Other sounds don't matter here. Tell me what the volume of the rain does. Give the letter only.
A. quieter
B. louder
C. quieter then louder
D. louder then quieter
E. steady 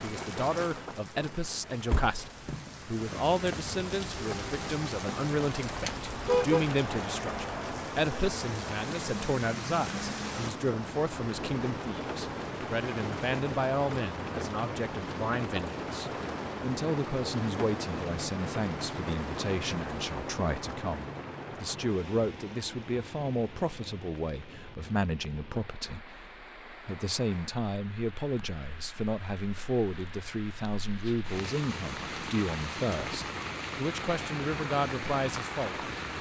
C.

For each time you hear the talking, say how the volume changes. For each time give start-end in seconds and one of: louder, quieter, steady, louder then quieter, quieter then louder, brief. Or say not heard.
0.0-35.9 steady.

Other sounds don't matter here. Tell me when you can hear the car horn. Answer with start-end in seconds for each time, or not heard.
5.7-6.7.